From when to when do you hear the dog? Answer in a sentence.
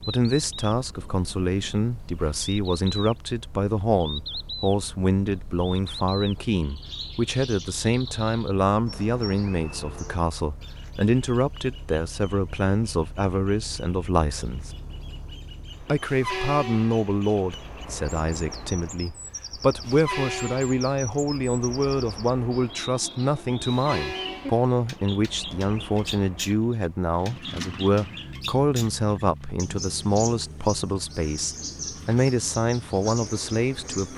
You can't hear the dog here.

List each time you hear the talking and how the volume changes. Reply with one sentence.
You can hear the talking from 0.0 to 14.7 s, at a steady volume; and from 15.8 to 34.1 s, at a steady volume.